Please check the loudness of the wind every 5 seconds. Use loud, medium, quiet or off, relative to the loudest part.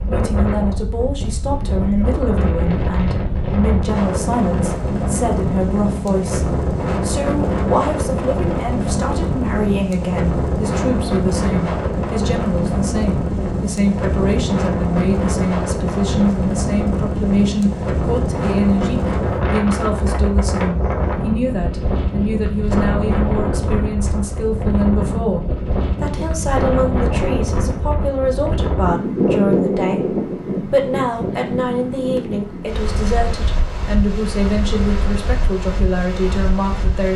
loud, loud, loud, loud, loud, loud, medium, medium.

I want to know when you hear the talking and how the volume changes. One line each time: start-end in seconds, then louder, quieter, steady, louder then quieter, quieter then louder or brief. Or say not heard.
0.1-37.1 steady.